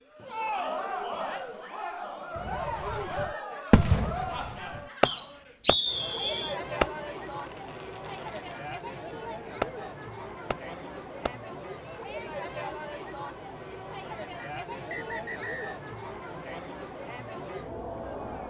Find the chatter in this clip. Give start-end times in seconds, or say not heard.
0.1-18.4.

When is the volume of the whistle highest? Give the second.
6 s.